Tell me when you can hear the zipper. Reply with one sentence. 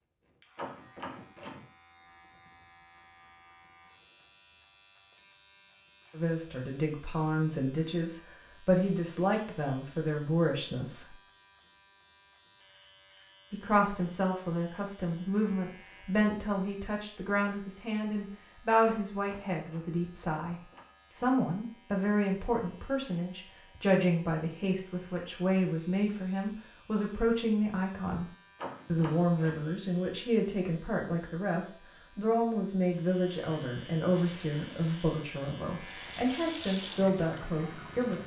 The zipper can't be heard in this clip.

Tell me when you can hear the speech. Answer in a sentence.
The speech can be heard from 6.2 to 11.1 s, from 13.5 to 28.2 s and from 28.9 to 38.2 s.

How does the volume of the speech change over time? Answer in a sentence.
The loudness of the speech stays about the same.